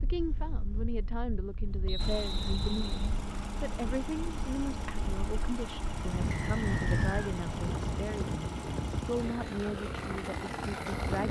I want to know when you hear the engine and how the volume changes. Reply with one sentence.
You can hear the engine from 1.9 to 11.2 s, at a steady volume.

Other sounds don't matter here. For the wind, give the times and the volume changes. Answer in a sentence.
The wind can be heard from 0.0 to 11.2 s, getting louder then quieter.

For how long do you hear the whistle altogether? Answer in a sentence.
You can hear the whistle for 2 seconds altogether.